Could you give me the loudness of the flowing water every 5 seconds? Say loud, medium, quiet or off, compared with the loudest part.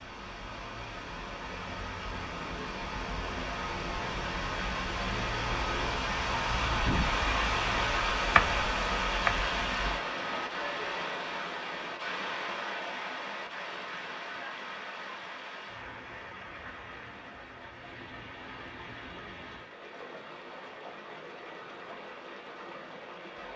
medium, loud, medium, quiet, quiet.